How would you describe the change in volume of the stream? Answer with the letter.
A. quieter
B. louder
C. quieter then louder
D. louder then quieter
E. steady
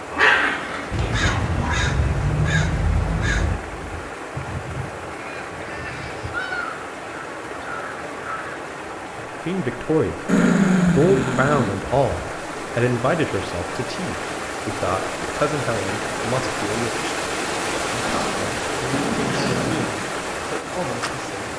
B.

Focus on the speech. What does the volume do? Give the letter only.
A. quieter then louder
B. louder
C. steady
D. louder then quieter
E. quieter
E.